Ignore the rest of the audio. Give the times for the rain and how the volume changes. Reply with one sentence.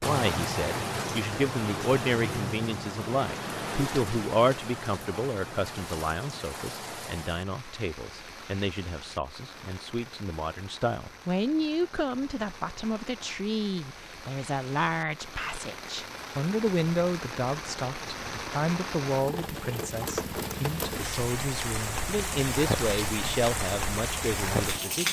You can hear the rain from 0.0 to 25.0 s, getting quieter then louder.